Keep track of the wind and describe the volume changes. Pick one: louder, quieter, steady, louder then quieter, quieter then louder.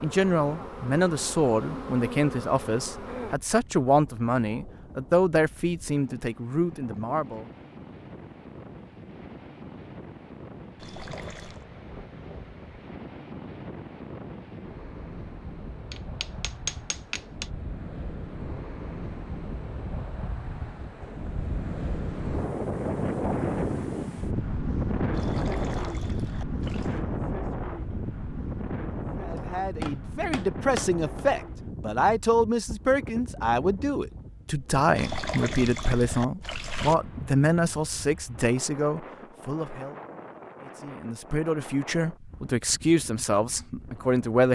louder then quieter.